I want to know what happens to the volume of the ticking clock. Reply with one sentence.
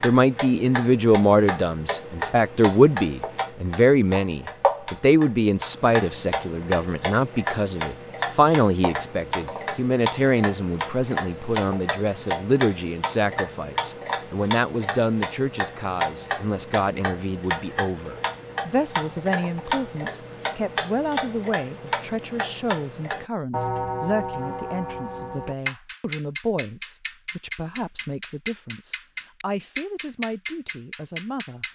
The loudness of the ticking clock stays about the same.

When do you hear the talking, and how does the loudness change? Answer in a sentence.
The talking can be heard from 0.0 to 31.6 s, getting quieter.